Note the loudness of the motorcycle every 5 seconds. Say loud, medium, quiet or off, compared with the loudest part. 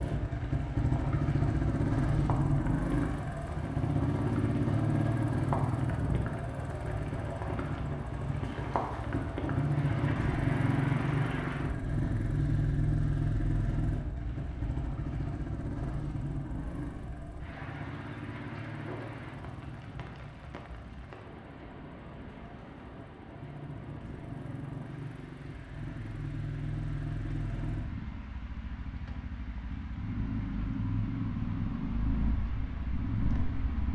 loud, loud, loud, medium, quiet, medium, medium.